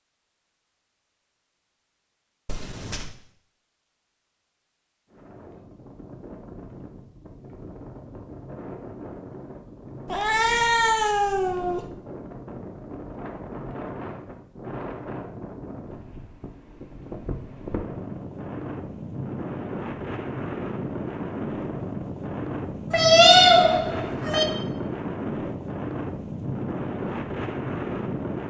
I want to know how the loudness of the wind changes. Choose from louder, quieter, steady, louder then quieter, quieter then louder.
louder.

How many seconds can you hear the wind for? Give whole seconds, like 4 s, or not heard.
23 s.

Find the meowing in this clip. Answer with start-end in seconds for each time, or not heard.
2.5-3.1, 10.1-11.9, 22.9-24.4.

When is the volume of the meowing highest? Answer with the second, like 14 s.
23 s.